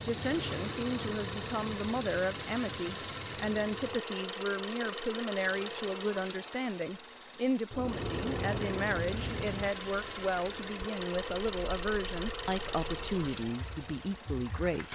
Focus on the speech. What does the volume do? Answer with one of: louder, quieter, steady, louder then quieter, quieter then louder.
steady.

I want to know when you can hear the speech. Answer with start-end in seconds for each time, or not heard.
0.0-14.8.